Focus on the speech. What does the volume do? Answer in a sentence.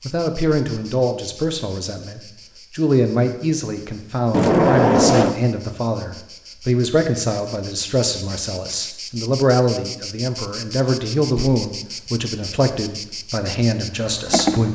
The loudness of the speech stays about the same.